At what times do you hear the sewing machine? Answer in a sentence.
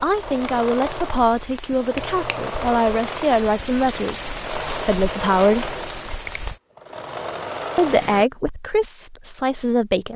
The sewing machine can be heard from 0.0 to 8.2 s.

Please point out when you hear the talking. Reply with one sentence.
The talking can be heard from 0.0 to 5.7 s and from 7.8 to 10.1 s.